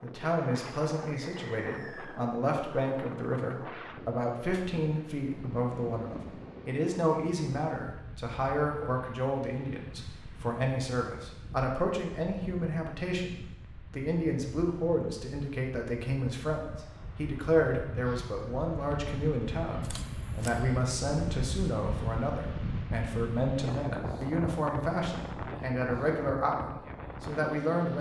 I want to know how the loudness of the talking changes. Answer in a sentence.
The loudness of the talking stays about the same.